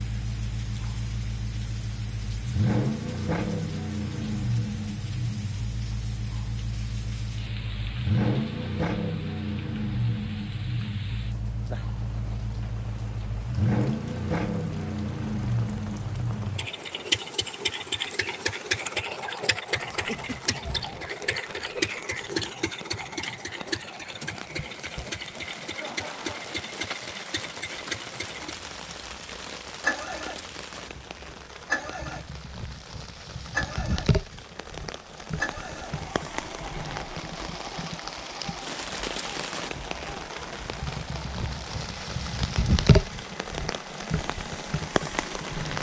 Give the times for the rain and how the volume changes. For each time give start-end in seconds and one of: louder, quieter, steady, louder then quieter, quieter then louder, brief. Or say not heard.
0.0-45.7 louder.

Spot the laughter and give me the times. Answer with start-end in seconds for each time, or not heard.
19.9-20.6, 25.6-26.5.